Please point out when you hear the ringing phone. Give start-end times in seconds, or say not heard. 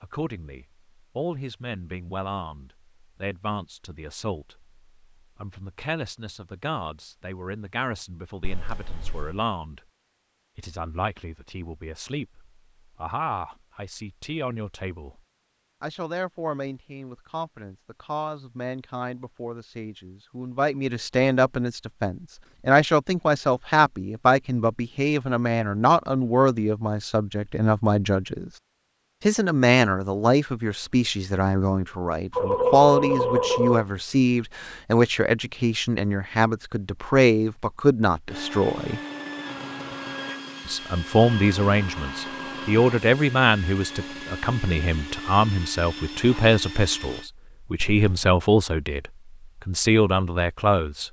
32.3-33.9.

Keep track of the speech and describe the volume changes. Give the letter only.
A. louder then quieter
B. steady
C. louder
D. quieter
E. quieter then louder
C.